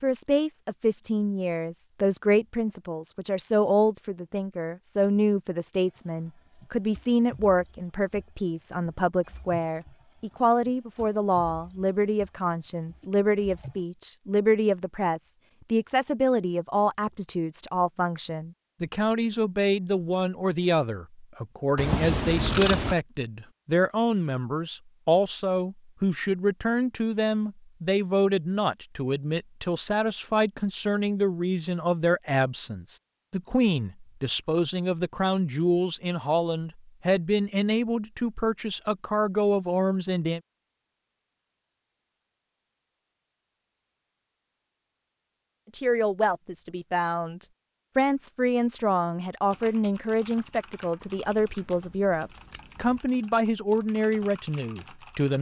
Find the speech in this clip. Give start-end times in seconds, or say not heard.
0.0-40.4, 45.7-55.3.